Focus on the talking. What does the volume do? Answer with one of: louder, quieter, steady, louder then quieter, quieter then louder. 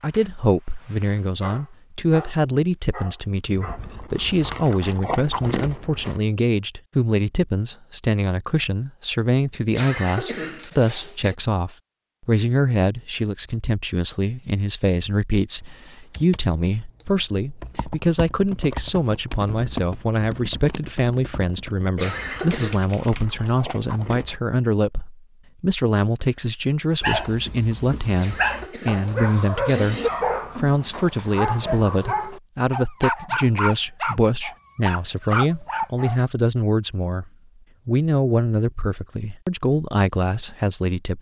steady.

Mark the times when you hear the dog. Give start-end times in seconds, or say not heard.
0.0-3.8, 27.0-36.2.